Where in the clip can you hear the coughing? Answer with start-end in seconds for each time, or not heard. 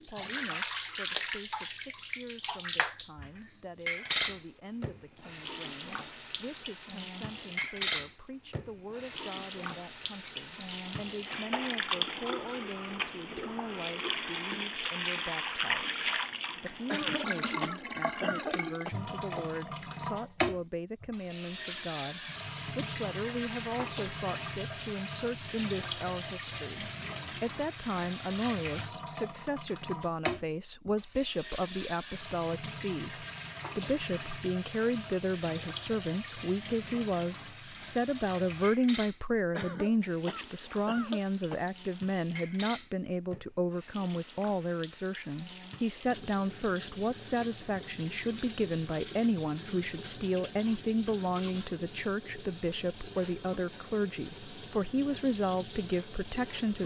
16.9-19.4, 39.5-41.6.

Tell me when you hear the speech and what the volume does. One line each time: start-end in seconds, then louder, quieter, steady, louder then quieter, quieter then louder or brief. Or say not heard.
0.0-56.8 louder.